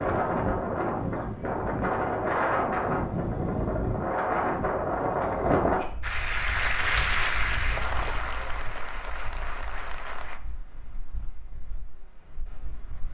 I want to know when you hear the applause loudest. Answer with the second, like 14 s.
7 s.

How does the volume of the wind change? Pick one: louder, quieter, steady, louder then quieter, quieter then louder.
quieter.